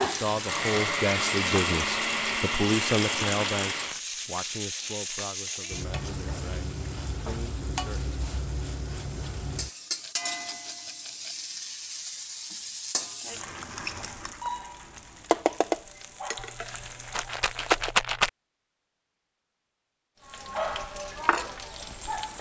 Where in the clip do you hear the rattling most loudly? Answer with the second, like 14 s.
18 s.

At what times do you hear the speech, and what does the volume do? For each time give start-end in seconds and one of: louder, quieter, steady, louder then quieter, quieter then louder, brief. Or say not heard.
0.0-8.2 quieter.